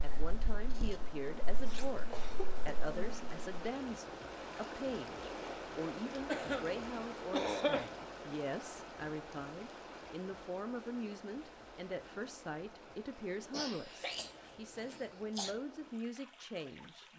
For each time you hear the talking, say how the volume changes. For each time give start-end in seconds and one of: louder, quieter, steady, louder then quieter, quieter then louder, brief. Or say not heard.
0.0-17.1 steady.